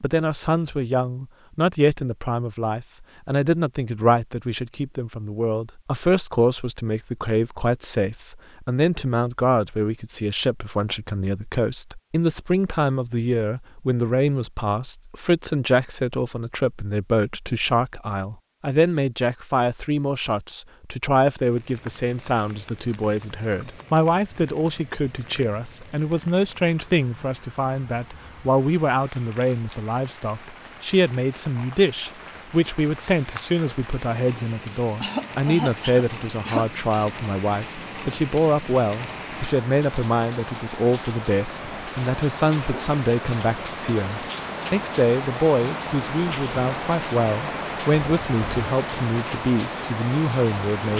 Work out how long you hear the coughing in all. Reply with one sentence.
You can hear the coughing for 2 seconds altogether.